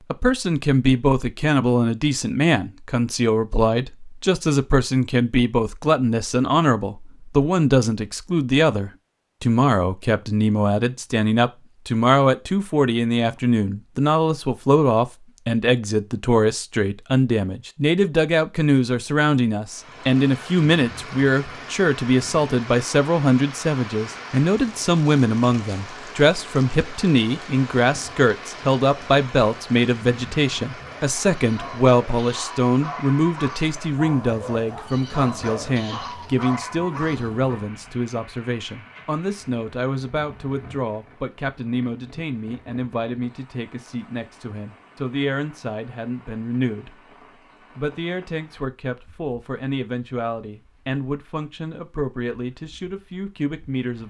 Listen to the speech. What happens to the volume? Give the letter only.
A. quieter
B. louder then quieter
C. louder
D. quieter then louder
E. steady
A.